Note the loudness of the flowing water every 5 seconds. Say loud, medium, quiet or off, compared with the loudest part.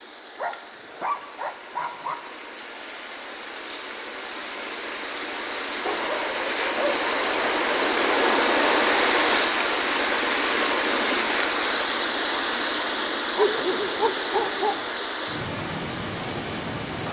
quiet, loud, loud, medium.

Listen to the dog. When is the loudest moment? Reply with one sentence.
The volume of the dog peaks at 14 seconds.